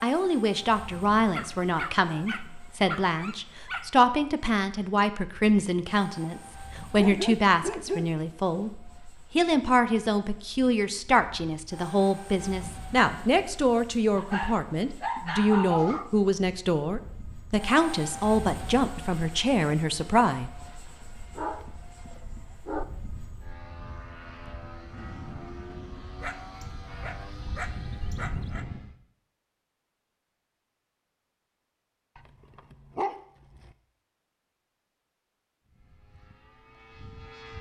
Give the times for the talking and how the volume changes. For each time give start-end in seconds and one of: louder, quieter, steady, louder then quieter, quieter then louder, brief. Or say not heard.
0.0-20.5 steady.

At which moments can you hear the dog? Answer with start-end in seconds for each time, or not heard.
1.3-4.0, 7.0-8.2, 14.2-16.1, 21.4-22.9, 26.2-28.6, 32.1-33.8.